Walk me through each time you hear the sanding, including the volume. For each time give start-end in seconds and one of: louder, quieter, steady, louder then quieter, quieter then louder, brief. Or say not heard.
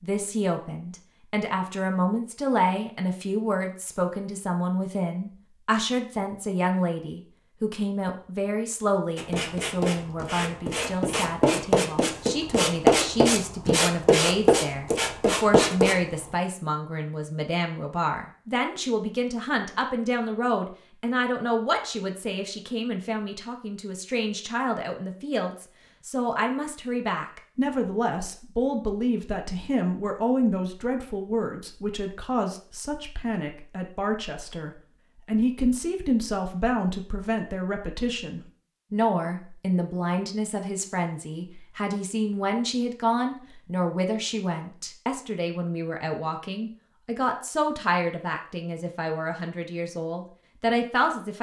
9.2-16.1 louder.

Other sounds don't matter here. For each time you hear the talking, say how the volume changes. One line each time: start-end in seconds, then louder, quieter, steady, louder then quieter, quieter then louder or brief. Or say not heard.
0.0-51.3 steady.